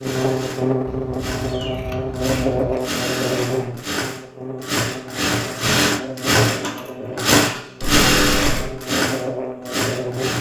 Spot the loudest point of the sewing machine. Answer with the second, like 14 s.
8 s.